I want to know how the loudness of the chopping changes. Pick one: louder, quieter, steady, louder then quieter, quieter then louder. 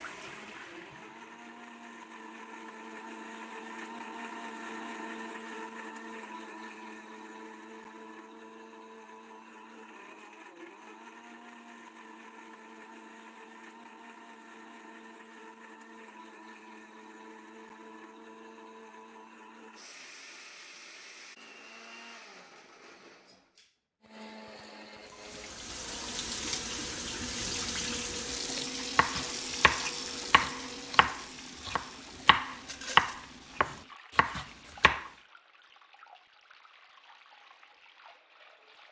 louder then quieter.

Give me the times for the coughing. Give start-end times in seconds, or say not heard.
not heard.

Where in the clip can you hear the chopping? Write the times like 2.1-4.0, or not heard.
28.9-35.1.